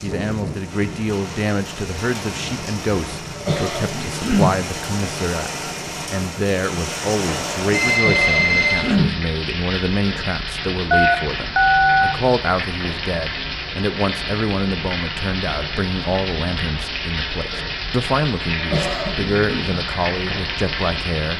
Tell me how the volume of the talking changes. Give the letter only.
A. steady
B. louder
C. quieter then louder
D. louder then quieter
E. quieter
A.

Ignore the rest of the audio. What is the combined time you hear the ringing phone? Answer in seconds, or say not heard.
3 s.